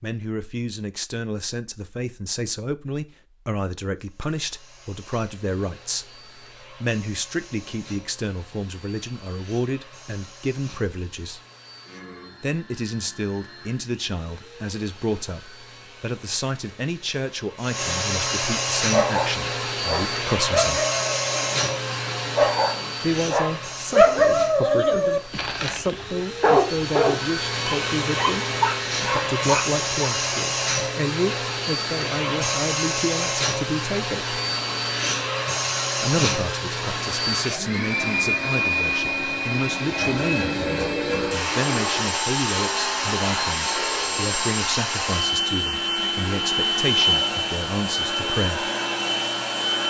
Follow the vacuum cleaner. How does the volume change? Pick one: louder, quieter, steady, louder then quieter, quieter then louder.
louder.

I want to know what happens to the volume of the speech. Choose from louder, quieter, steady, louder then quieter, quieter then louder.
steady.